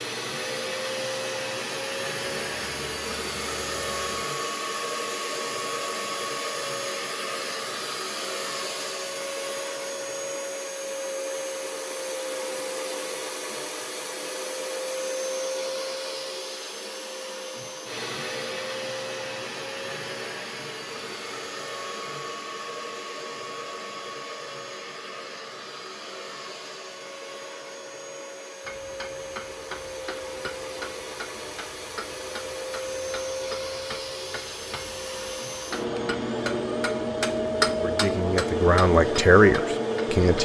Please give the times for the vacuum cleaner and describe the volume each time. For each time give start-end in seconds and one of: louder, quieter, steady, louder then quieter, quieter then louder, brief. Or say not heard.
0.0-40.4 quieter then louder.